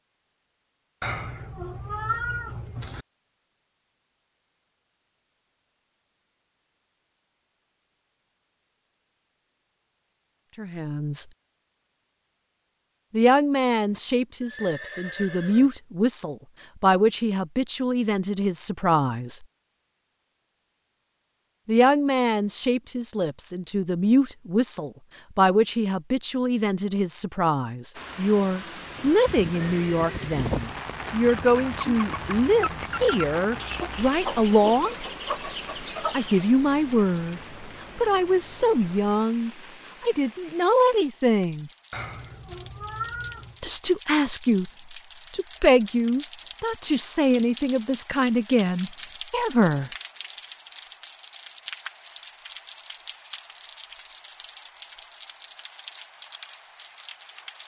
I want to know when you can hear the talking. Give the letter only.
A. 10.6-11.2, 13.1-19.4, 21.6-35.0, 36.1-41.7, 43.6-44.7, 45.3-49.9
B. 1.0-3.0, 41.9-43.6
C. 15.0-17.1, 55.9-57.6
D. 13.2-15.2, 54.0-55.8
A.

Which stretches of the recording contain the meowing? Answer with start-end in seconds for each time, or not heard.
1.0-3.0, 41.9-43.6.